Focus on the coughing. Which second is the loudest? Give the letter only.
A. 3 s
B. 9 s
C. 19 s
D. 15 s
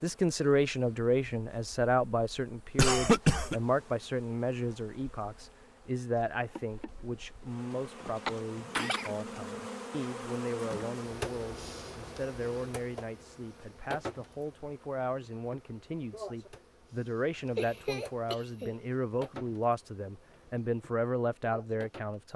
A.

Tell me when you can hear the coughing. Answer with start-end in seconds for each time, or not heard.
2.8-3.5, 8.2-9.1, 17.6-18.8.